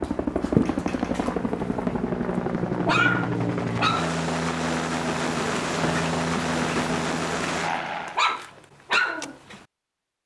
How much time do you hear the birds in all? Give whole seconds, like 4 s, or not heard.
not heard.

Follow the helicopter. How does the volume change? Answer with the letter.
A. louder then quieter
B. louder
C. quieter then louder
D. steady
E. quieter
D.